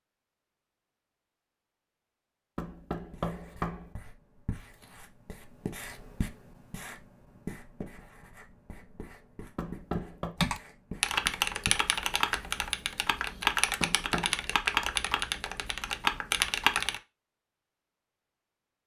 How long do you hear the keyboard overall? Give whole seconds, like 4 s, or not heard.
7 s.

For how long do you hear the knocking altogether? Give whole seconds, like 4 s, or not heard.
3 s.